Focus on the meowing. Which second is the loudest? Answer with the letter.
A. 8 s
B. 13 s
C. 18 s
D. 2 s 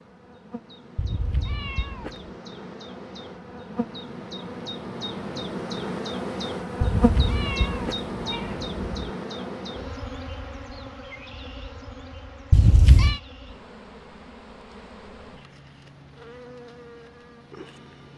B.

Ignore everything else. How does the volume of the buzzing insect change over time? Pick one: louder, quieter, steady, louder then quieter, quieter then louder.
louder then quieter.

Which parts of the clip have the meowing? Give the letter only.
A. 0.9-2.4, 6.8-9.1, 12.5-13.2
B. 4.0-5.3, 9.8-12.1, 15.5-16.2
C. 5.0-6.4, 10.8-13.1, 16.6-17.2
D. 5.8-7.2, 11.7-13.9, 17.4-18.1
A.